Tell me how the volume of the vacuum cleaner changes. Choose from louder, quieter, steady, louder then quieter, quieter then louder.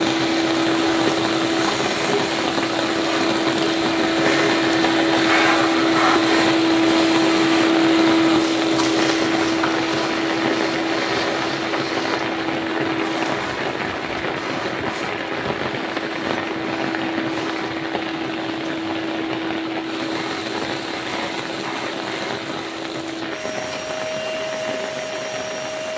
quieter.